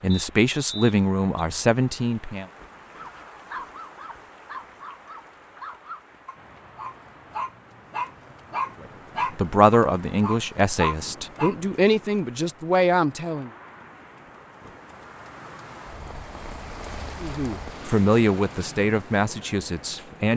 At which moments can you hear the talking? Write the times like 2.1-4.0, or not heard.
0.0-2.5, 8.8-13.5, 17.2-20.3.